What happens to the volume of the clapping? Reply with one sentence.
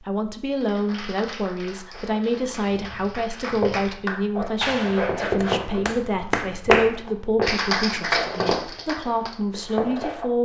The volume of the clapping goes up.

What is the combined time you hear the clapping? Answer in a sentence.
The clapping can be heard for 9 seconds in total.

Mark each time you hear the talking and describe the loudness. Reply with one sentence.
You can hear the talking from 0.0 to 10.4 s, at a steady volume.